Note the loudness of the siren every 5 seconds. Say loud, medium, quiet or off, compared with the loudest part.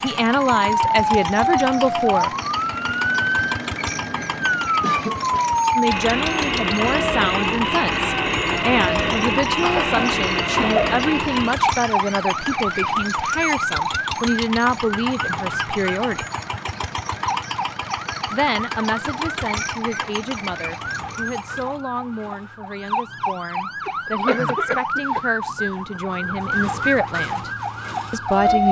loud, loud, loud, medium, medium, loud.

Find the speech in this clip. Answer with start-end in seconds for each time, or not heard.
0.0-2.3, 5.8-16.2, 18.3-27.5, 28.1-28.6.